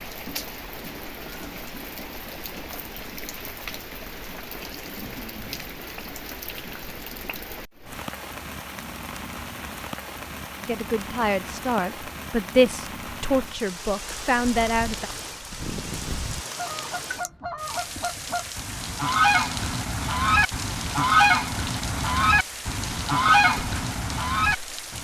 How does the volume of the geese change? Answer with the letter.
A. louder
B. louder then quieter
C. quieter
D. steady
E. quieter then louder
A.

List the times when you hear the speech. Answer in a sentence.
The speech can be heard from 10.6 to 15.1 s.